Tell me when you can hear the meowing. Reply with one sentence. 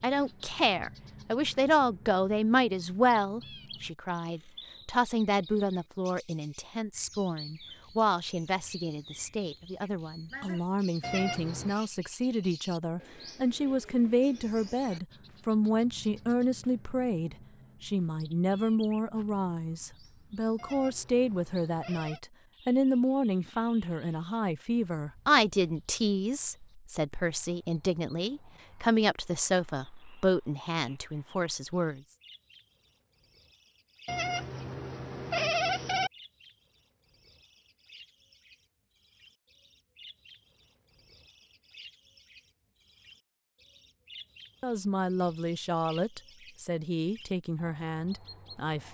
You can hear the meowing from 11.0 to 11.8 s, from 20.6 to 22.2 s and from 34.0 to 36.1 s.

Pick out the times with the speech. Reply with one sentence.
You can hear the speech from 0.0 to 32.0 s and from 44.6 to 48.8 s.